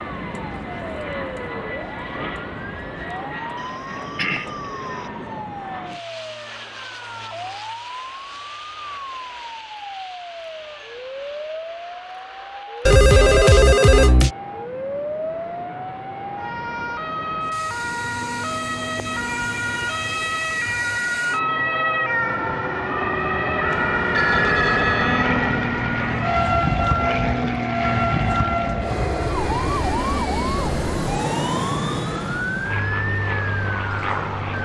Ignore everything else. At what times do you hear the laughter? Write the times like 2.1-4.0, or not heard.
not heard.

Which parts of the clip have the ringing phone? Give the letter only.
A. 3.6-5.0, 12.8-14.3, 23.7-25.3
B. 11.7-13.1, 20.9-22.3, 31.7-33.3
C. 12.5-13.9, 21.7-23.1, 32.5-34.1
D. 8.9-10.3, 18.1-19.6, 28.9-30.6
A.